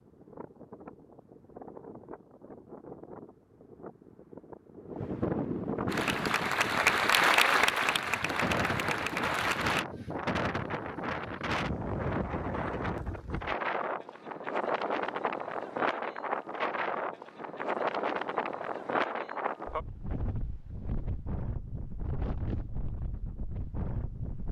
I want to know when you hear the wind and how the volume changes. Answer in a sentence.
The wind can be heard from 0.0 to 24.4 s, getting louder then quieter.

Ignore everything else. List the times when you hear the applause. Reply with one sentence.
The applause can be heard from 5.8 to 9.8 s.